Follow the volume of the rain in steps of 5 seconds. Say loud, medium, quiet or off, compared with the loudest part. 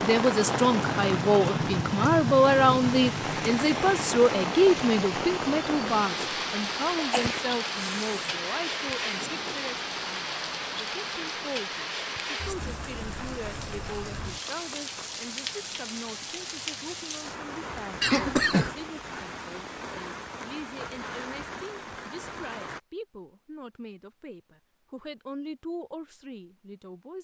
loud, loud, medium, medium, medium, off.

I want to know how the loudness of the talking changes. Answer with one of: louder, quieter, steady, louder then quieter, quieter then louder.
quieter.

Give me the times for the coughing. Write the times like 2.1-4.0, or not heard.
7.0-8.4, 18.0-18.8.